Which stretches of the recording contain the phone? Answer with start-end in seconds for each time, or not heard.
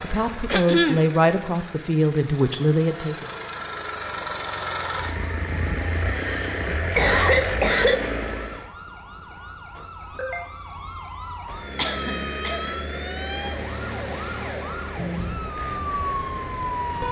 not heard.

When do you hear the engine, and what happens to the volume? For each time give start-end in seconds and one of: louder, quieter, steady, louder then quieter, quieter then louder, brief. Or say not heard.
0.0-8.7 louder
11.4-17.0 quieter.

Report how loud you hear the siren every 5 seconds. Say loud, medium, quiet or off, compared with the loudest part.
off, quiet, medium, loud.